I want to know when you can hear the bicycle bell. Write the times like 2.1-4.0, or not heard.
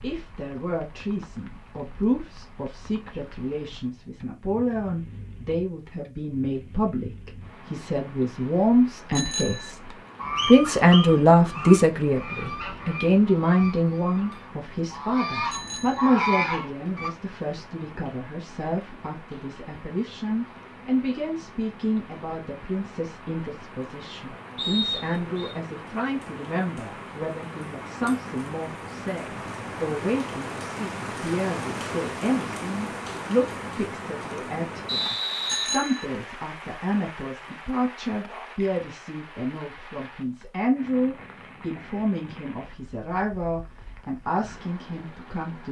9.1-9.7, 15.5-16.1, 35.5-36.0.